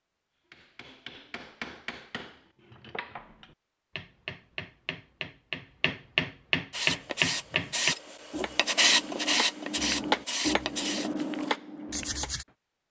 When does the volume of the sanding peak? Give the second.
9 s.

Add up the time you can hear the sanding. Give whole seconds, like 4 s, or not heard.
6 s.